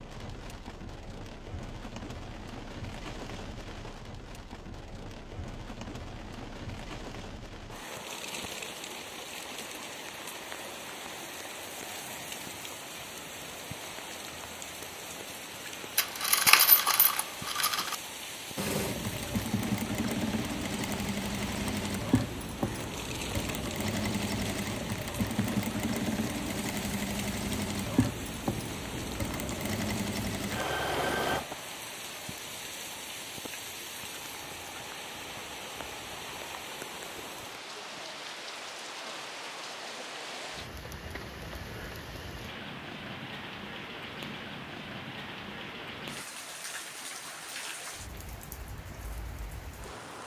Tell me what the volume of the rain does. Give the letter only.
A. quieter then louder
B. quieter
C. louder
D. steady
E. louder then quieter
D.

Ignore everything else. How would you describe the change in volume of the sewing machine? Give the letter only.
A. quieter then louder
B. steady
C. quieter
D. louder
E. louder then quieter
B.